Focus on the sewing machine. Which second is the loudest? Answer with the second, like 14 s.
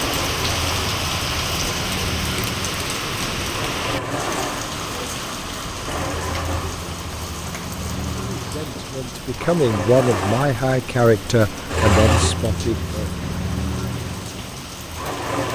12 s.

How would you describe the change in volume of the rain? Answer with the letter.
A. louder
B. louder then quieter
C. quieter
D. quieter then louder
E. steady
C.